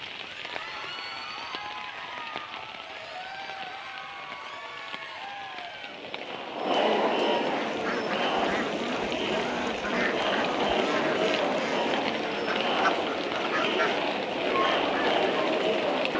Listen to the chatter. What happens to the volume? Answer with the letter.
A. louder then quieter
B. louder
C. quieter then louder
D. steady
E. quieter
B.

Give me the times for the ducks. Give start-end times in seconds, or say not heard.
7.5-15.2.